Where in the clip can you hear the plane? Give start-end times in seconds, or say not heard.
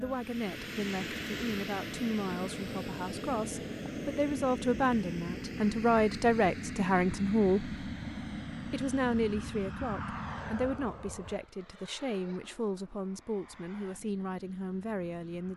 0.0-15.5.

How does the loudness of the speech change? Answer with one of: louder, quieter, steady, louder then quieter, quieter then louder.
louder then quieter.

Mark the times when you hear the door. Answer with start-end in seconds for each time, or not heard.
not heard.